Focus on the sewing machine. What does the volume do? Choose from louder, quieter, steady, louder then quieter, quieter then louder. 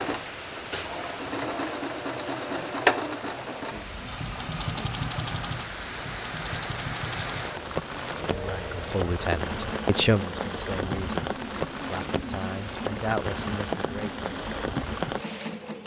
quieter.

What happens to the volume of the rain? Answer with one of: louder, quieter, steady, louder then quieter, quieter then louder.
louder.